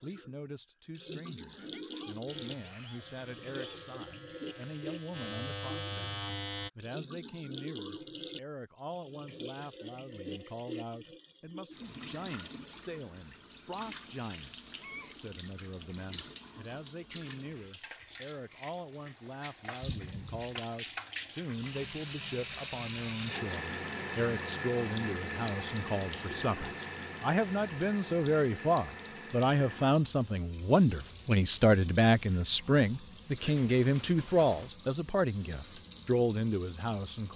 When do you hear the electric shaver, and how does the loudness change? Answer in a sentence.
The electric shaver can be heard from 2.2 to 6.7 s, getting louder.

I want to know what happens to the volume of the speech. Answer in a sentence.
The volume of the speech goes up.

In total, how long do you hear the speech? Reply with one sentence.
You can hear the speech for 37 seconds altogether.